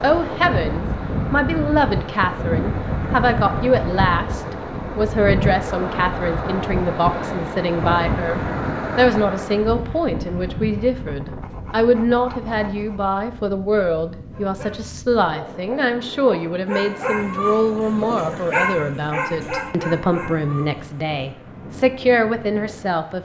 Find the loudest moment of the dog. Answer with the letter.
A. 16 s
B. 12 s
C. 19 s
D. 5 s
C.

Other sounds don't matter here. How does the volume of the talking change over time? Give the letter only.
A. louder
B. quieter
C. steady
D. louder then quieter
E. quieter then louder
C.